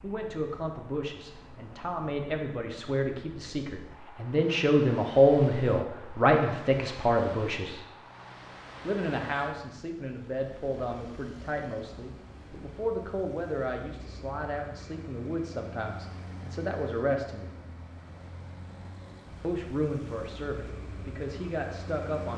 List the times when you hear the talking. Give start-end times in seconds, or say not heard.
0.0-7.8, 8.8-17.5, 19.4-22.3.